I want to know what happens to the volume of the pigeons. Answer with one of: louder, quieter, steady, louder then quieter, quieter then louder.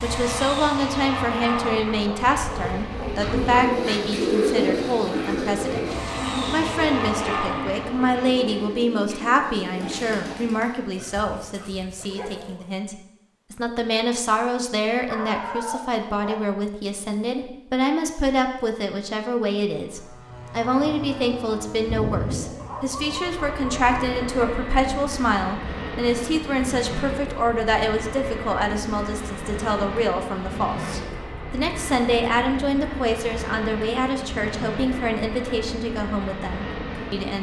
quieter.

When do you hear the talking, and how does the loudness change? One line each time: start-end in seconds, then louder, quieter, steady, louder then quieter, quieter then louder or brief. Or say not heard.
0.0-37.3 steady.